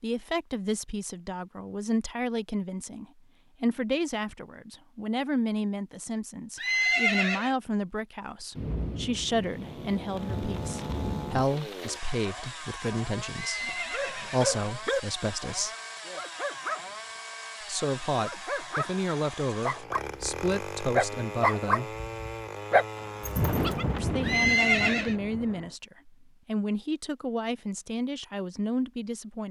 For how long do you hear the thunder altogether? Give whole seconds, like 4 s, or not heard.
6 s.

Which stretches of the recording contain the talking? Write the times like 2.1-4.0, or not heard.
0.0-15.7, 17.6-21.9, 23.9-29.4.